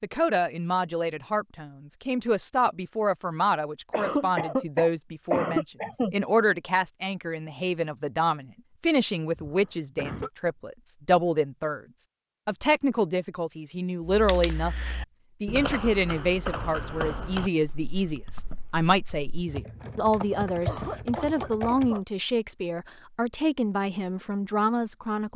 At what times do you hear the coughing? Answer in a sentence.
You can hear the coughing from 3.9 to 6.2 s, from 9.3 to 10.3 s and from 20.6 to 22.0 s.